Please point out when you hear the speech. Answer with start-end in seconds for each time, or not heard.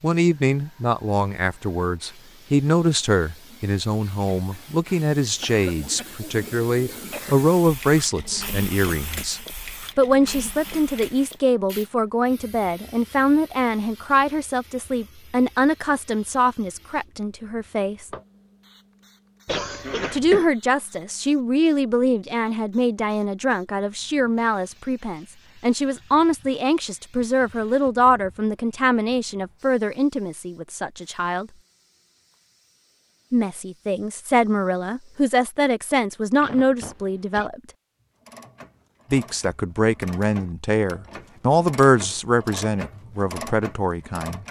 0.0-18.1, 20.1-31.5, 33.3-37.6, 39.1-44.4.